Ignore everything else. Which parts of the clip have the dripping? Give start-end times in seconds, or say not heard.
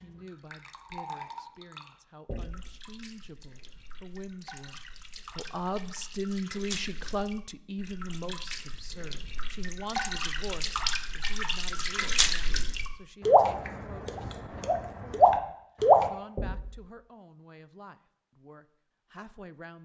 0.0-16.1.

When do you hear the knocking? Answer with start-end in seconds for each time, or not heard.
2.2-2.8, 16.4-16.9.